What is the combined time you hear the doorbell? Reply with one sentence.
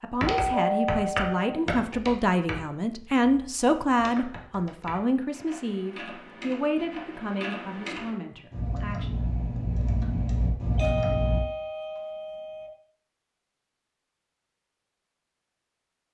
You can hear the doorbell for 3 seconds altogether.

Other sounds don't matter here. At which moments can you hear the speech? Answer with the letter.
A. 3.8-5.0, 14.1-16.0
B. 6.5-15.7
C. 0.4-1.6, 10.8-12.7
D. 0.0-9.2
D.